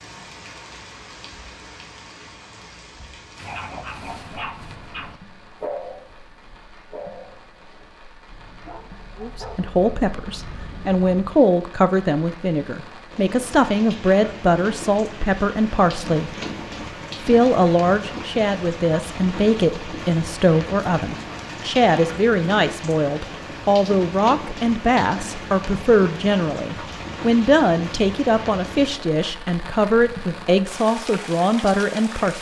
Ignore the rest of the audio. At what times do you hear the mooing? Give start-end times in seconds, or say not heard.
not heard.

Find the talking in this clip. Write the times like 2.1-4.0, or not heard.
9.2-16.4, 17.2-32.3.